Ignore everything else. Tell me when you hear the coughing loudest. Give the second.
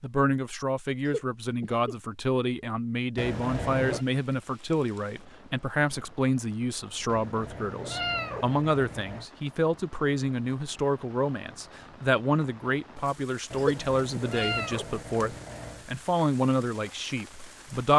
14 s.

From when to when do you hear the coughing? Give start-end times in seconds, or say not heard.
1.1-1.9, 13.6-14.2.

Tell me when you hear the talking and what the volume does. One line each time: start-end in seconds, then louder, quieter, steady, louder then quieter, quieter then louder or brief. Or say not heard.
0.0-17.9 steady.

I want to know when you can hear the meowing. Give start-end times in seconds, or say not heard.
3.1-4.0, 7.0-9.2, 13.5-15.8.